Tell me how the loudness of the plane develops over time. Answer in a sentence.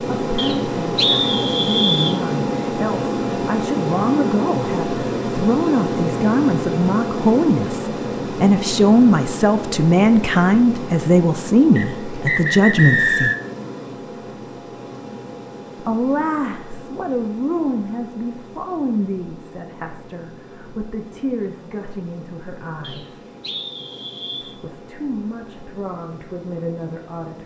The loudness of the plane goes down.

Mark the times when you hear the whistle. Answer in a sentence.
You can hear the whistle from 0.3 to 2.2 s, from 11.8 to 13.3 s and from 22.8 to 24.6 s.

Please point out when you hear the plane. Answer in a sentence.
You can hear the plane from 0.0 to 27.4 s.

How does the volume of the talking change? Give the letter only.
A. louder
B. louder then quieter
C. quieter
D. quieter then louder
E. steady
B.